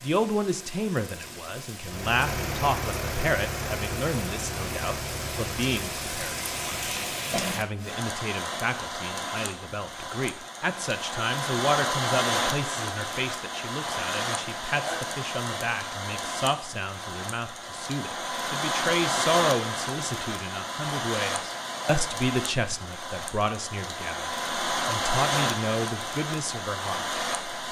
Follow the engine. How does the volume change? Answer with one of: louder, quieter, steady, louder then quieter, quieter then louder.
quieter.